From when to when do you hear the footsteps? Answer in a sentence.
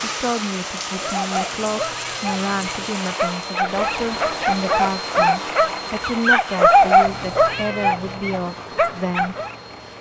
The footsteps can't be heard in this clip.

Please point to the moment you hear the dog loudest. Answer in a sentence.
The volume of the dog peaks at 7 seconds.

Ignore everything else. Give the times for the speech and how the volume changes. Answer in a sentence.
You can hear the speech from 0.0 to 9.3 s, at a steady volume.